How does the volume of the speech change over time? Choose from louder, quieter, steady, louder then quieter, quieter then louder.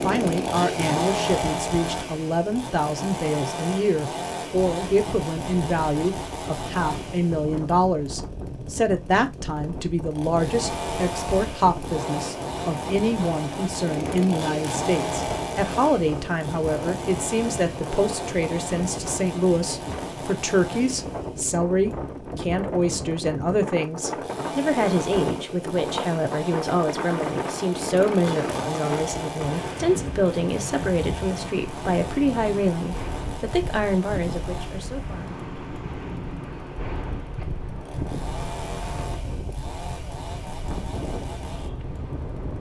steady.